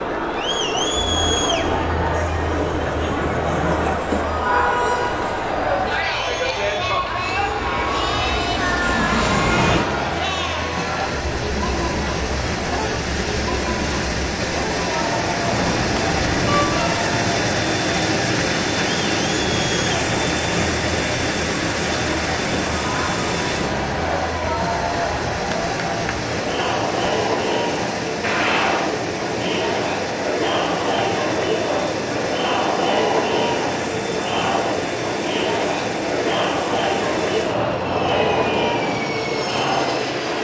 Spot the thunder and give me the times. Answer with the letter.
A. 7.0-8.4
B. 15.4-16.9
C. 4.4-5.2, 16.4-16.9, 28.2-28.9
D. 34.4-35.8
B.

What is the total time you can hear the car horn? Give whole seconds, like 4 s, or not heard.
2 s.